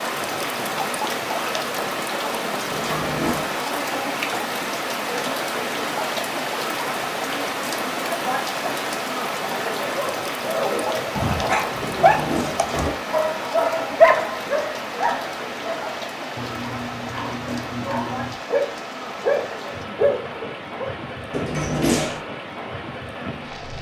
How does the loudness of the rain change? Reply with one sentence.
The volume of the rain goes down.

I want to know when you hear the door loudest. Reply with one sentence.
The loudest moment of the door is at 22 seconds.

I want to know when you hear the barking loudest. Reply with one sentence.
The loudest moment of the barking is at 14 seconds.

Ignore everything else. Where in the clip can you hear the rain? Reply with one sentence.
The rain can be heard from 0.0 to 23.7 s.